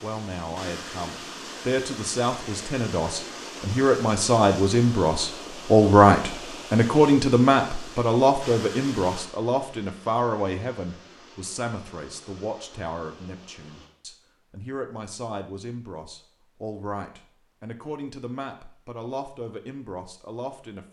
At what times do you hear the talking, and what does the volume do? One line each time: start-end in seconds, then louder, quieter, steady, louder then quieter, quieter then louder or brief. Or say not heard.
0.0-20.8 louder then quieter.